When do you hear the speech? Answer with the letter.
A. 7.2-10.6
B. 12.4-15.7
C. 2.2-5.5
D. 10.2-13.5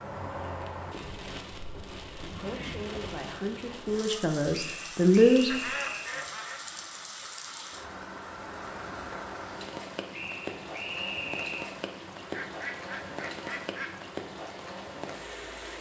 C.